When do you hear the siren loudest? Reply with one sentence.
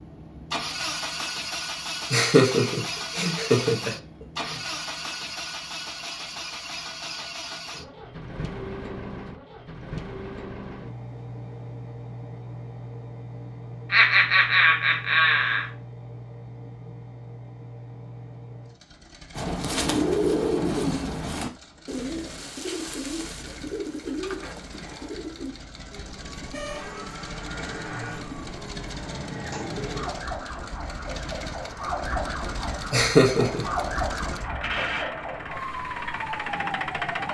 The loudest moment of the siren is at 34 seconds.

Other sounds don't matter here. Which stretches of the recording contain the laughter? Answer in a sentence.
The laughter can be heard from 2.0 to 4.5 s, from 13.9 to 15.7 s and from 32.9 to 33.6 s.